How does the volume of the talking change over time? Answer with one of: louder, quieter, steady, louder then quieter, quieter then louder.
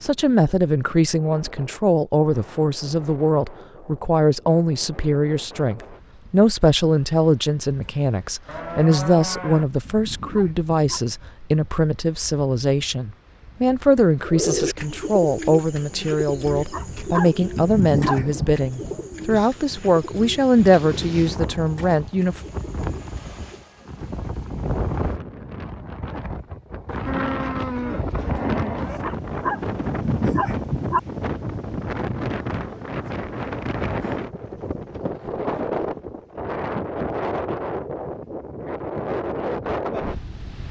steady.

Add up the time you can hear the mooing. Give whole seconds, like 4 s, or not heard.
3 s.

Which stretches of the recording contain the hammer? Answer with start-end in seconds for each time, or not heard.
not heard.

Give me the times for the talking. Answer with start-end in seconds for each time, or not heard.
0.0-22.4.